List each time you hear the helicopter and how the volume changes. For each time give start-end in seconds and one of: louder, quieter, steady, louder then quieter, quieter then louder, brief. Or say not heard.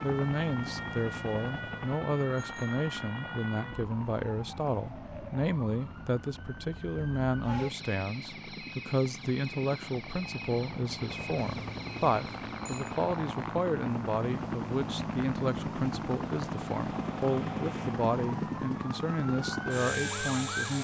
0.0-20.7 quieter then louder.